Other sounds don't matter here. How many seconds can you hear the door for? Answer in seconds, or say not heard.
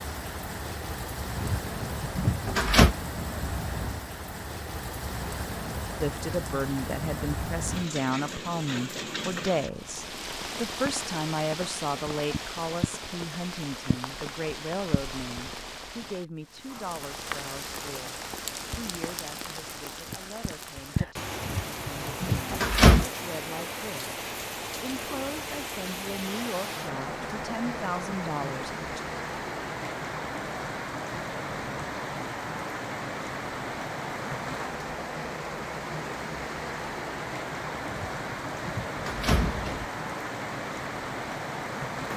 5 s.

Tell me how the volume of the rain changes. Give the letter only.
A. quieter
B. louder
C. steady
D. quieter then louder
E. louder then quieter
C.